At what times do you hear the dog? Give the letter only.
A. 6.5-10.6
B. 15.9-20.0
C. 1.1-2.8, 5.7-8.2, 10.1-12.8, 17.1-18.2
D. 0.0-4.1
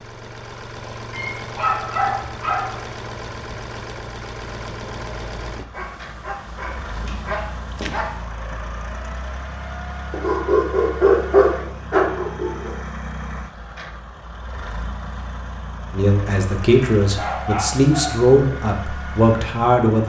C.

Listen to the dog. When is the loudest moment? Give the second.
11 s.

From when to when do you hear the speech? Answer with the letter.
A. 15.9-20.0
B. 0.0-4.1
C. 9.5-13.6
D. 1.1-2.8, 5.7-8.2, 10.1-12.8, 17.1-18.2
A.